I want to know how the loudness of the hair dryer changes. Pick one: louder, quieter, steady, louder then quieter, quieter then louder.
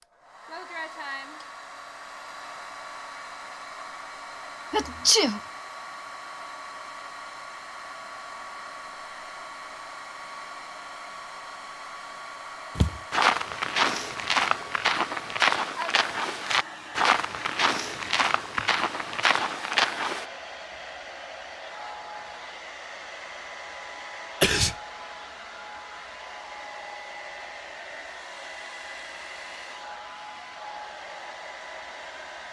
steady.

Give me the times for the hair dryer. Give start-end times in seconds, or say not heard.
0.0-32.4.